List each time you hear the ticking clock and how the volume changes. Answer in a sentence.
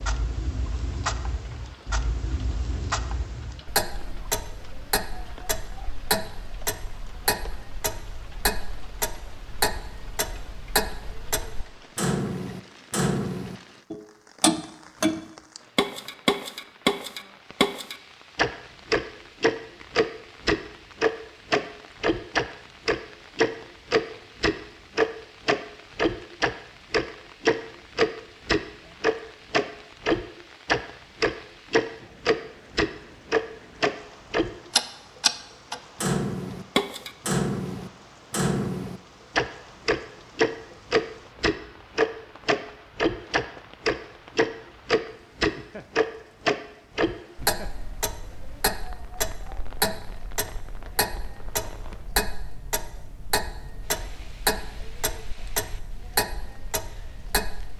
The ticking clock can be heard from 0.0 to 57.7 s, getting louder then quieter.